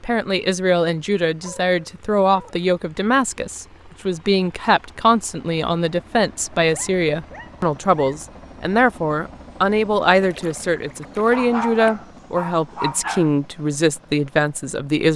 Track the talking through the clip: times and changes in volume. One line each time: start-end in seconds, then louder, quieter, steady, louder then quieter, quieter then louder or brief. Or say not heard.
0.0-15.1 steady.